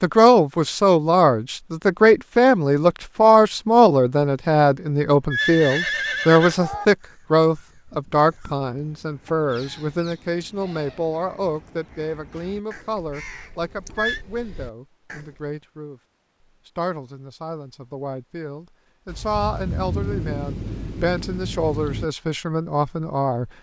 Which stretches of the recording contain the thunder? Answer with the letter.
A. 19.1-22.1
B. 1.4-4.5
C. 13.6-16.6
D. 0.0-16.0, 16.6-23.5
A.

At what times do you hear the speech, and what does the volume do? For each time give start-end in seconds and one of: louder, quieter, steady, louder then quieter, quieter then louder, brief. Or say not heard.
0.0-16.0 quieter
16.6-23.5 louder.